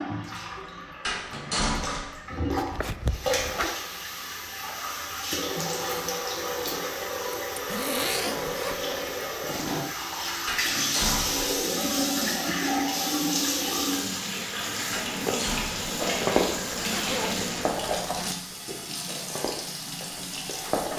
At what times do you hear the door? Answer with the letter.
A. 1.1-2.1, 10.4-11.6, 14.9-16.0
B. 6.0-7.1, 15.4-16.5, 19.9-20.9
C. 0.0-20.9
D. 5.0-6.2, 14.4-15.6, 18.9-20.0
A.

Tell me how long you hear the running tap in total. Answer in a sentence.
You can hear the running tap for 21 seconds altogether.